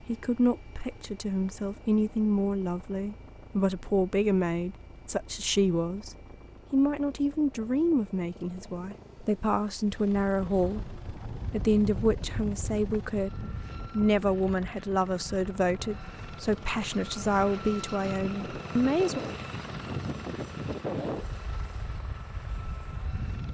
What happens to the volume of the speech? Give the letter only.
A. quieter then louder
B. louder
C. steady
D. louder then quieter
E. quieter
C.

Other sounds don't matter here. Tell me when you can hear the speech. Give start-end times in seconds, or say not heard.
0.1-19.2.